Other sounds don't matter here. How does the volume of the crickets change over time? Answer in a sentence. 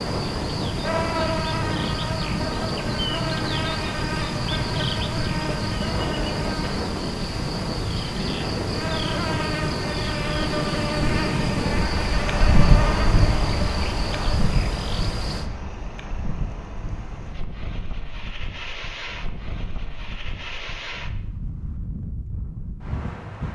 The volume of the crickets stays about the same.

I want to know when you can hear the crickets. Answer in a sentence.
The crickets can be heard from 0.0 to 15.5 s.